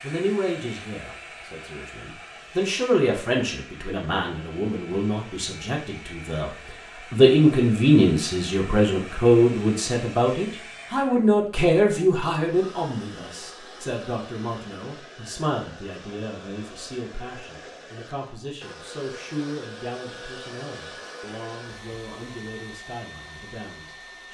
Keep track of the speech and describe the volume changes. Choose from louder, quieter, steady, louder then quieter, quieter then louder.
louder then quieter.